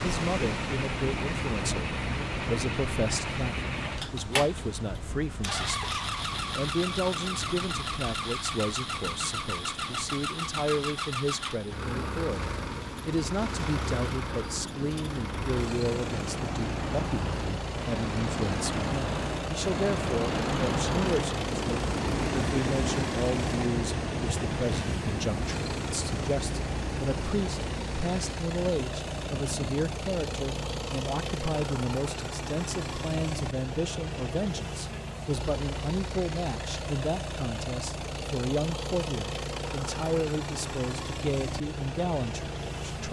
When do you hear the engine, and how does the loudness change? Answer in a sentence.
The engine can be heard from 0.0 to 43.0 s, at a steady volume.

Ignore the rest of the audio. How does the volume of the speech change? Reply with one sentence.
The volume of the speech stays about the same.